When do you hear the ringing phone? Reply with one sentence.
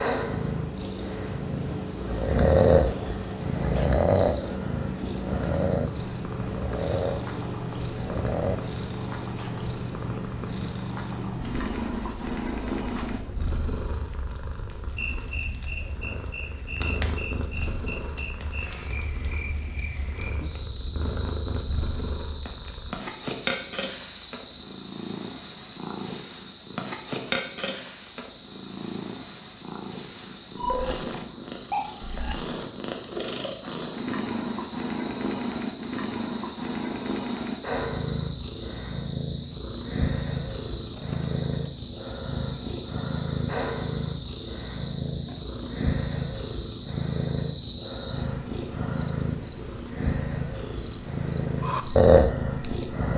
You can't hear the ringing phone here.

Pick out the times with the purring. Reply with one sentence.
You can hear the purring from 0.0 to 53.1 s.